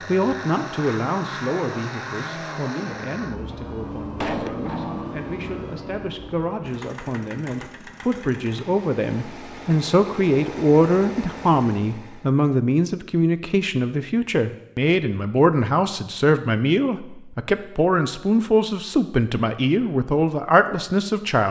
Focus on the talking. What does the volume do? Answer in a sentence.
The loudness of the talking goes up.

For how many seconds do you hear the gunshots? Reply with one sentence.
The gunshots can be heard for 2 seconds in total.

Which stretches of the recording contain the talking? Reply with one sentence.
You can hear the talking from 0.1 to 21.4 s.